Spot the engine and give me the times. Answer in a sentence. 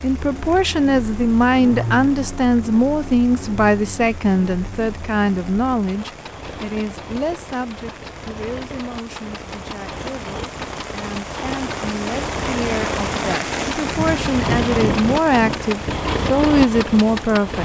The engine can be heard from 0.0 to 17.6 s.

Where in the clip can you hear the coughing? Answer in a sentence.
The coughing can't be heard in this clip.